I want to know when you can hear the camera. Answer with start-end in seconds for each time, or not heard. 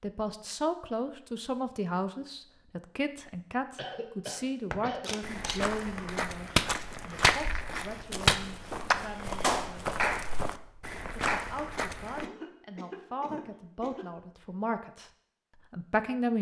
5.0-5.7.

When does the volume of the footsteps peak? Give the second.
7 s.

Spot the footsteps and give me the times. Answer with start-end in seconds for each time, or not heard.
4.7-12.2.